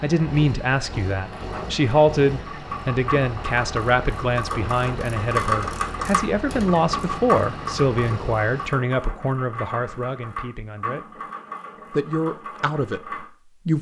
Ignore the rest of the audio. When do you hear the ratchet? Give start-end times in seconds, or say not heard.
1.2-13.2.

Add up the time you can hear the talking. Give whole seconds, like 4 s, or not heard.
13 s.